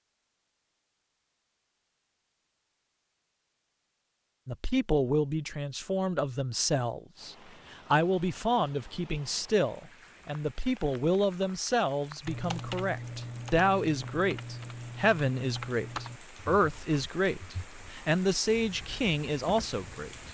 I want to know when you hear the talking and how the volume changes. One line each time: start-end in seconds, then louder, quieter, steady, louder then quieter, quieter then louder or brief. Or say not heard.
4.5-20.1 steady.